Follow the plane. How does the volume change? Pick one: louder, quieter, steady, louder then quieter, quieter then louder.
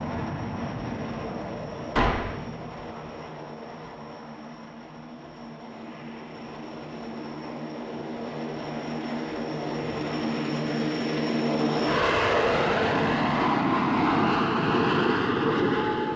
quieter then louder.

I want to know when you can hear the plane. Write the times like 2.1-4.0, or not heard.
0.0-16.1.